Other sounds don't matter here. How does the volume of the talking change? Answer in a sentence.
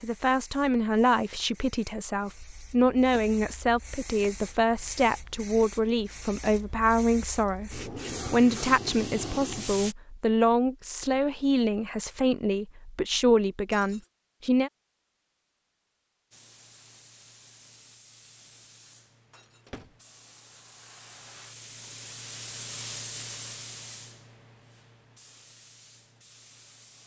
The volume of the talking stays about the same.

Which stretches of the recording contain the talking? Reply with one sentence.
You can hear the talking from 0.0 to 14.7 s.